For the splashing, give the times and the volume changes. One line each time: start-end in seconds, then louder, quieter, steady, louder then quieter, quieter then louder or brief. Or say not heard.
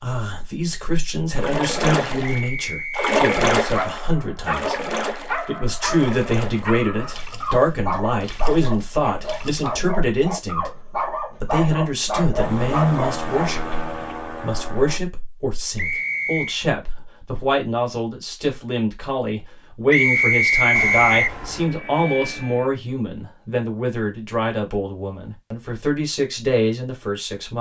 1.4-9.9 quieter.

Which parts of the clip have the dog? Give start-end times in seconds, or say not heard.
3.7-14.2.